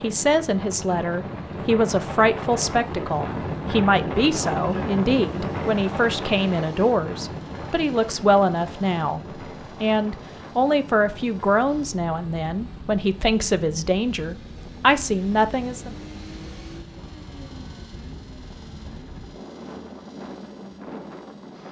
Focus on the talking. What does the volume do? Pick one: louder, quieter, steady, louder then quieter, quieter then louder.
steady.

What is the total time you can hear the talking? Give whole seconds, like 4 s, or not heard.
16 s.